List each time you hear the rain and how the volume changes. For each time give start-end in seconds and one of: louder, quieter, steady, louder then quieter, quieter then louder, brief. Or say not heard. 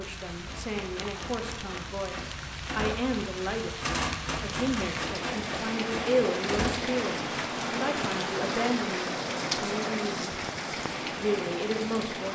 0.0-12.3 louder.